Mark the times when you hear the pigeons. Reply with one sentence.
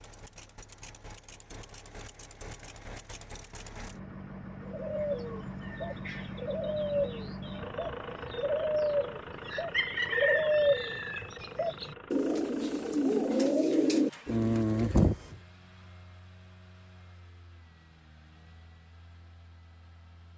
The pigeons can be heard from 4.7 to 15.2 s.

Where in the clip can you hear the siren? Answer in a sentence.
The siren can't be heard in this clip.